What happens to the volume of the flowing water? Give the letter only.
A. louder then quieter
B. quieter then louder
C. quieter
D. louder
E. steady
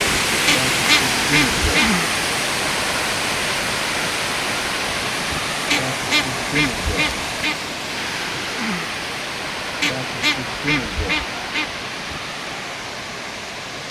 C.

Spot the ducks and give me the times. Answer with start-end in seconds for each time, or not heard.
0.5-2.0, 5.7-7.5, 9.8-11.7.